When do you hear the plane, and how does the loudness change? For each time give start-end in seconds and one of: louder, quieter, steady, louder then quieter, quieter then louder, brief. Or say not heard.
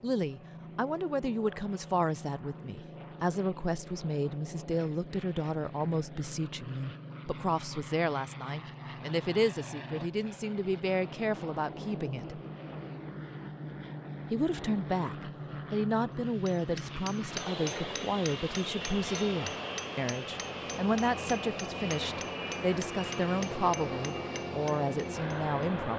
0.0-25.9 louder.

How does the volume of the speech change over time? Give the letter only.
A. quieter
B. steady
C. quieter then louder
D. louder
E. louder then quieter
B.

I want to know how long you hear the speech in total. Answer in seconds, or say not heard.
24 s.